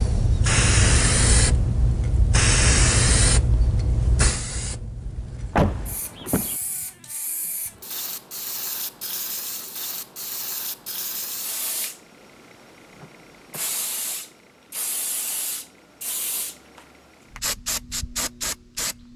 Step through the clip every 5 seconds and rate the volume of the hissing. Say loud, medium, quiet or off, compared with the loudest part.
loud, quiet, quiet, medium.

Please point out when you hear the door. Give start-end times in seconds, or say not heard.
5.5-6.5, 12.9-13.7.